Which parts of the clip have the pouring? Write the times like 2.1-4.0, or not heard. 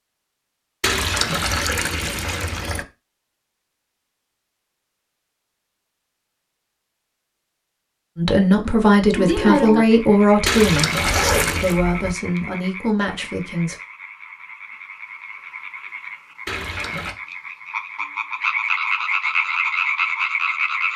0.8-2.9, 10.4-11.8, 16.4-17.1.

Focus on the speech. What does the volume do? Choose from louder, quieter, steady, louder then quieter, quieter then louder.
quieter.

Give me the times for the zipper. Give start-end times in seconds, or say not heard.
10.9-12.2.